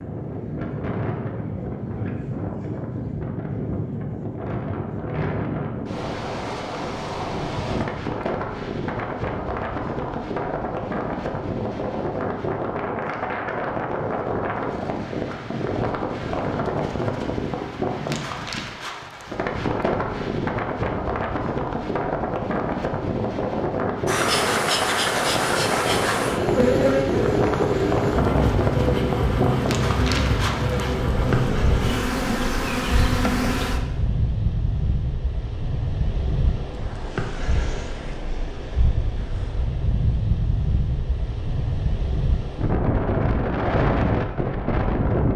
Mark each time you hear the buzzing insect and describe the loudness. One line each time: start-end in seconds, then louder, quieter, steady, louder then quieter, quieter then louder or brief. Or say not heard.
24.1-33.9 steady.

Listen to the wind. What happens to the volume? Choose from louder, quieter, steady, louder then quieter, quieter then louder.
steady.